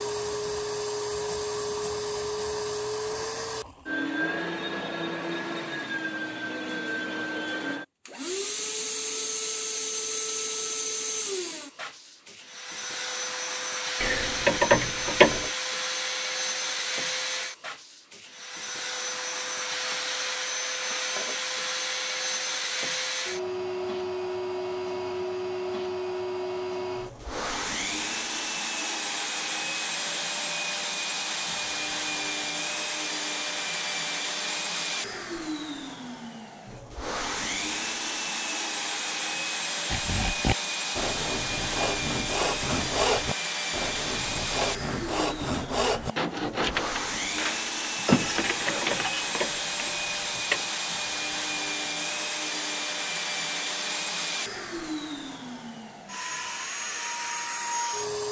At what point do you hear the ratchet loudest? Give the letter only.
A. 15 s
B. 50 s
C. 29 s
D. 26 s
A.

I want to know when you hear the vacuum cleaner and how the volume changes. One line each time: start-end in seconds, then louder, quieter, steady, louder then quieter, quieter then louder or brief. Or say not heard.
0.0-58.2 steady.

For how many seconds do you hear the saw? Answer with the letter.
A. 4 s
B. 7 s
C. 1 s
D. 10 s
D.